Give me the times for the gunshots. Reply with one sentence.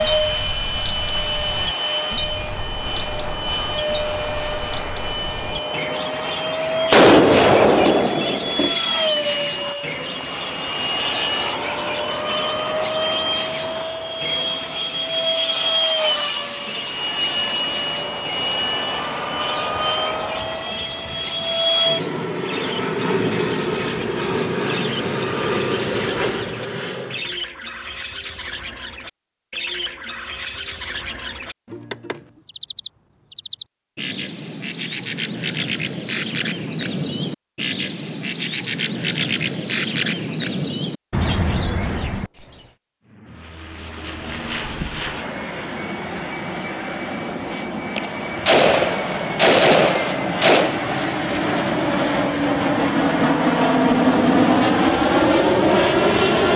The gunshots can be heard from 6.9 to 8.8 s and from 48.0 to 50.8 s.